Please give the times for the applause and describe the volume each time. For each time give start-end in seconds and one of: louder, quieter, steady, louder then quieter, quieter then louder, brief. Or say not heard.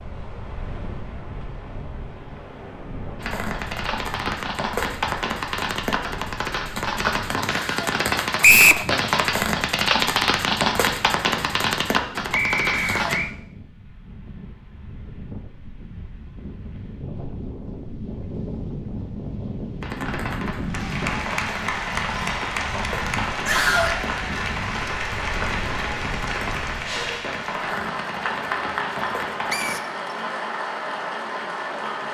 20.6-32.0 steady.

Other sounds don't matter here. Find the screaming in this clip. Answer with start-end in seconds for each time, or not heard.
7.5-8.0, 12.7-13.2, 23.4-23.9.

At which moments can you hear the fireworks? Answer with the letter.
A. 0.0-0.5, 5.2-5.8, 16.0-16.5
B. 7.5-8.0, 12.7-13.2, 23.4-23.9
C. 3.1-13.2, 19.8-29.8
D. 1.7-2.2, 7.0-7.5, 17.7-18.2
C.